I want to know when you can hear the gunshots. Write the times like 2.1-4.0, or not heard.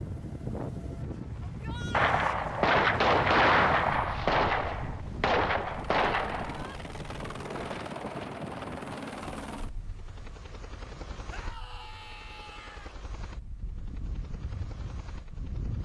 1.9-6.7.